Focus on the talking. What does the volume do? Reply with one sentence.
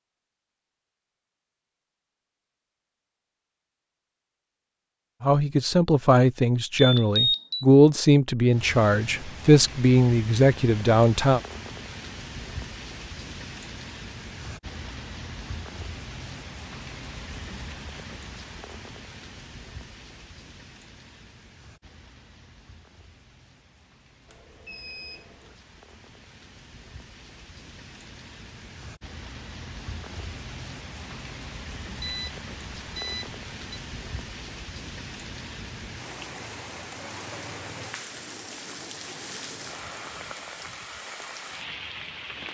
The volume of the talking stays about the same.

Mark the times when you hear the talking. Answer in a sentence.
The talking can be heard from 5.2 to 11.4 s.